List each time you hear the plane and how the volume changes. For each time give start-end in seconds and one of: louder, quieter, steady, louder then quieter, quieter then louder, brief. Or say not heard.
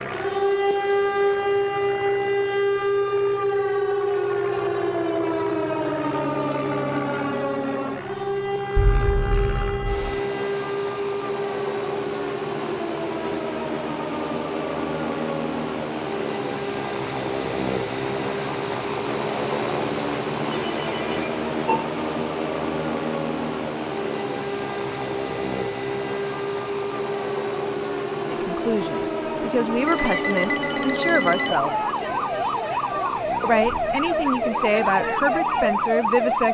0.0-36.4 louder then quieter.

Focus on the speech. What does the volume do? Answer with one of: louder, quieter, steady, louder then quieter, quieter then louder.
steady.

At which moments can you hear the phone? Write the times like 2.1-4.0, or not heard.
8.8-10.2, 20.5-21.9, 29.9-31.6.